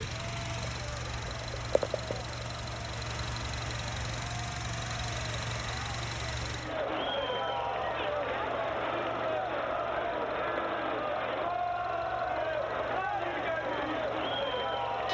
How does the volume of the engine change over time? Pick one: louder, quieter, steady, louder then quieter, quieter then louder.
quieter.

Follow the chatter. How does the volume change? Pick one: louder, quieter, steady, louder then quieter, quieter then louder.
louder.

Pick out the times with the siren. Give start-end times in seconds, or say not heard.
not heard.